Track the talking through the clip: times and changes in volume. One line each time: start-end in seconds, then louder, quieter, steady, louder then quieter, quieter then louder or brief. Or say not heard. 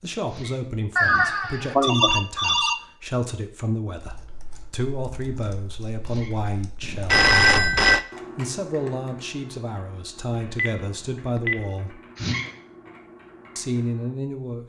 0.0-12.0 steady
13.6-14.6 brief.